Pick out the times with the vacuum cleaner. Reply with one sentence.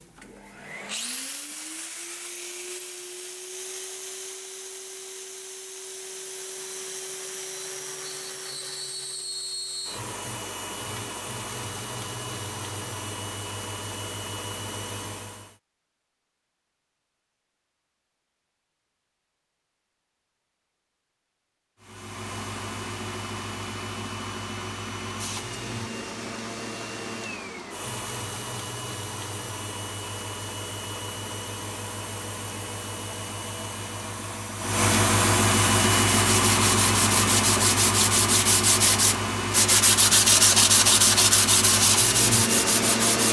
The vacuum cleaner can be heard from 0.0 to 15.6 s and from 21.8 to 43.2 s.